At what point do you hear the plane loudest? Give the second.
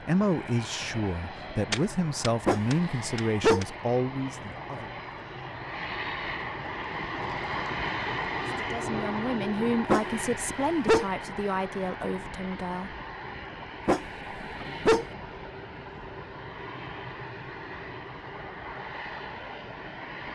8 s.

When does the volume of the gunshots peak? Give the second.
2 s.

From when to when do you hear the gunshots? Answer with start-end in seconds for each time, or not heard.
1.7-3.6.